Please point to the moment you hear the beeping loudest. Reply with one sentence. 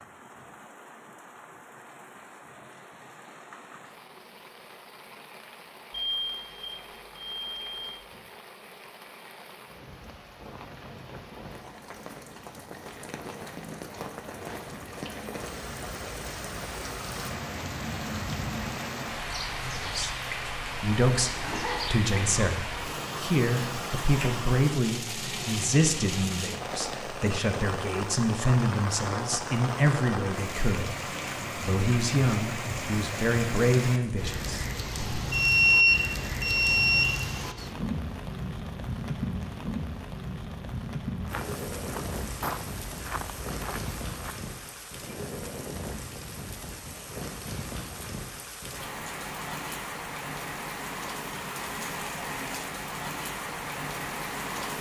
The loudest moment of the beeping is at 36 seconds.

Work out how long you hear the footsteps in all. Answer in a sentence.
You can hear the footsteps for 3 seconds altogether.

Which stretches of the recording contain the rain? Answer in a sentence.
You can hear the rain from 0.0 to 54.7 s.